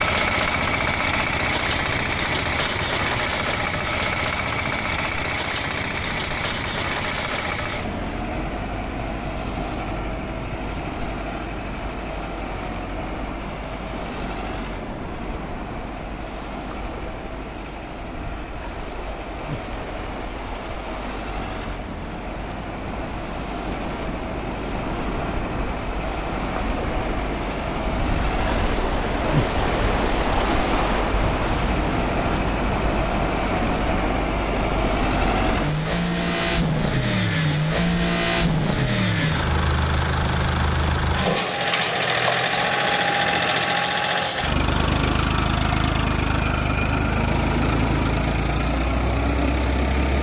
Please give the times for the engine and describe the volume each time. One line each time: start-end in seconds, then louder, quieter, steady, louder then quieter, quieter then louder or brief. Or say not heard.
0.0-50.1 quieter then louder.